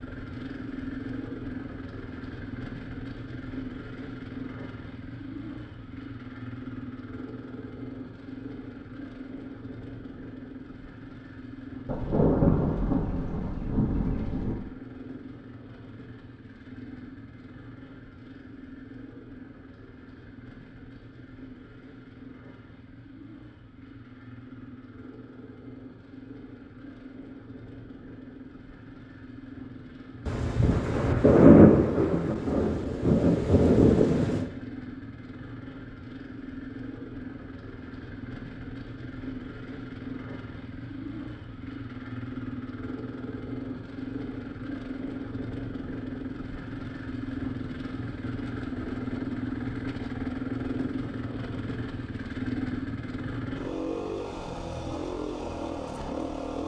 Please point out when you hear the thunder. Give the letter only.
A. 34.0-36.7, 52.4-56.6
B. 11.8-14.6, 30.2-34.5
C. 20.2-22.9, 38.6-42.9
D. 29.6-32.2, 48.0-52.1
B.